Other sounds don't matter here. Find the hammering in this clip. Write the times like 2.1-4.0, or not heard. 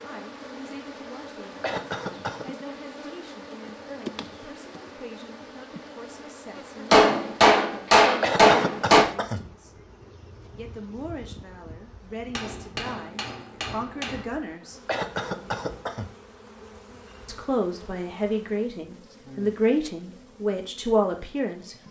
6.9-9.1, 12.3-14.2.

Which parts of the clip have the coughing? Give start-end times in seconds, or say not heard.
1.6-2.5, 8.2-9.4, 14.8-16.1.